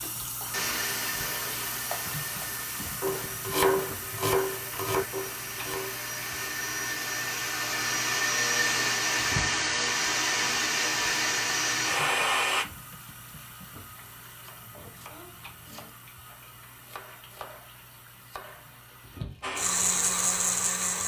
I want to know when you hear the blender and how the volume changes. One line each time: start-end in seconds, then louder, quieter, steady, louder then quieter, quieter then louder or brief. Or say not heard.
0.0-12.7 quieter then louder
19.4-21.0 brief.